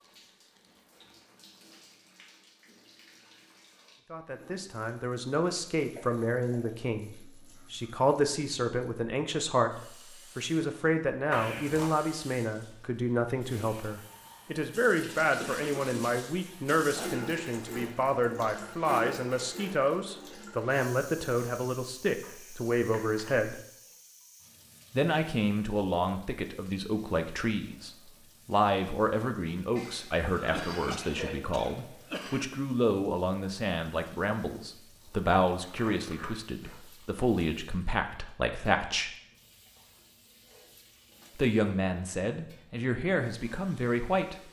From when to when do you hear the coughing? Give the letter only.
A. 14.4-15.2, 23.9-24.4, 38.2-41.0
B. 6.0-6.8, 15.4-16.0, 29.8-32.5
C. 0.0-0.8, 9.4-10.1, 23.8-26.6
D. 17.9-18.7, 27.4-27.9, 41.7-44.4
B.